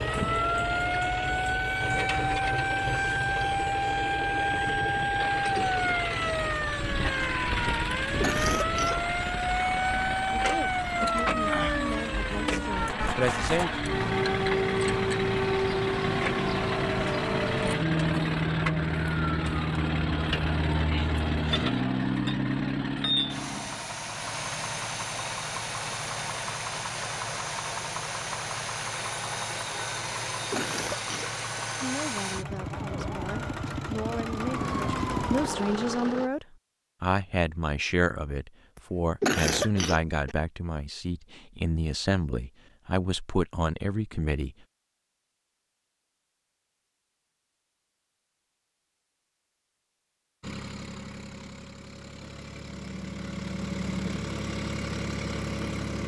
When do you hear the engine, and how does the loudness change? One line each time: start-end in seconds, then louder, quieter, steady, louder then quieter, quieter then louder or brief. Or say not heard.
0.0-36.3 steady
50.4-56.0 louder.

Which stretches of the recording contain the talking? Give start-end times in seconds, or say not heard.
10.3-13.7, 31.8-44.5.